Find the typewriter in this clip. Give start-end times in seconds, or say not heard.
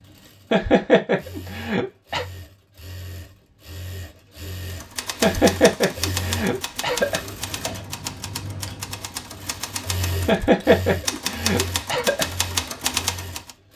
4.7-13.5.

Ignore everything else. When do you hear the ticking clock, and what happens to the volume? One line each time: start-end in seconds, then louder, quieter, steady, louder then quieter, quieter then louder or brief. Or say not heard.
not heard.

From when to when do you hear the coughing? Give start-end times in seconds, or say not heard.
0.5-2.2, 5.2-7.2, 10.2-12.2.